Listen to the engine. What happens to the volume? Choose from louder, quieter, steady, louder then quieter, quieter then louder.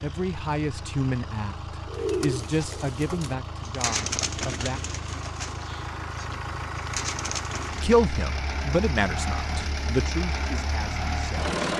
louder.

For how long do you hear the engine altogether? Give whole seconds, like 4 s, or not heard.
12 s.